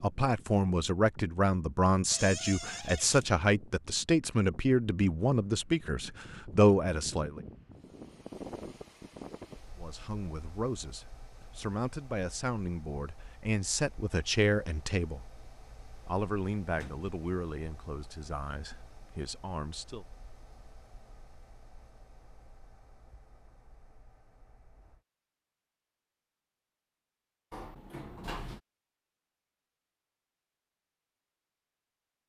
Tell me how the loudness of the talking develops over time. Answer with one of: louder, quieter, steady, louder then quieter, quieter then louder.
quieter.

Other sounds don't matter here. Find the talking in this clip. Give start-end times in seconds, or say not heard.
0.0-7.4, 9.8-15.2, 16.1-20.1.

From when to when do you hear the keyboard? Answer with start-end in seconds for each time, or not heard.
not heard.